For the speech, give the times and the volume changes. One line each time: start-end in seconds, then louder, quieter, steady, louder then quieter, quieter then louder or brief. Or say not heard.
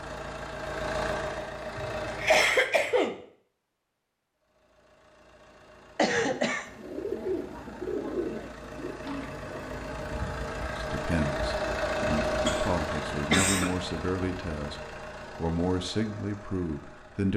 10.7-17.3 steady.